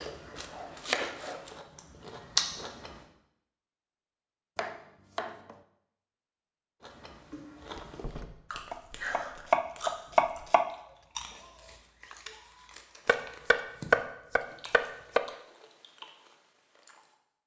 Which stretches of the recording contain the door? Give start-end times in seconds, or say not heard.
7.7-8.6.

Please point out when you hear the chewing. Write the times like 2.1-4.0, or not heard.
0.0-3.0, 6.8-17.1.